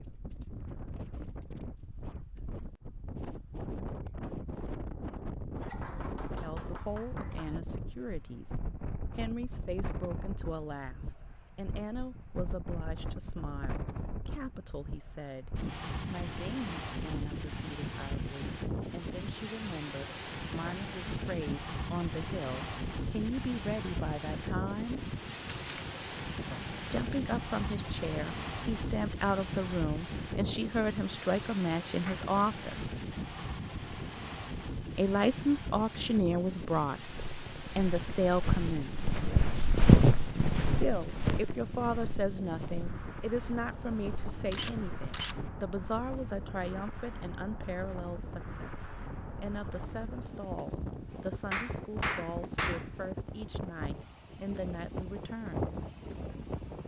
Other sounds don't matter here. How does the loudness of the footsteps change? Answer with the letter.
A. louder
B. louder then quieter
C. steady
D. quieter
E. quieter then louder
B.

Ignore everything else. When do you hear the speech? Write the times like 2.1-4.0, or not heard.
6.4-8.6, 9.2-25.0, 26.9-33.0, 35.0-37.1, 37.8-39.1, 40.6-55.9.